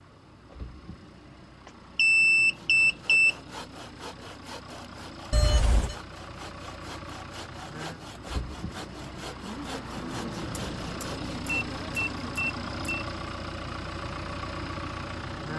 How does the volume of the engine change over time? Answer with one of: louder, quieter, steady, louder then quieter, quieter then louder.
louder.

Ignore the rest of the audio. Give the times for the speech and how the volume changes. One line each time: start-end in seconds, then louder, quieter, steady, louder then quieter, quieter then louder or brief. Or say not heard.
not heard.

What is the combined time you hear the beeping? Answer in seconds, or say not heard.
5 s.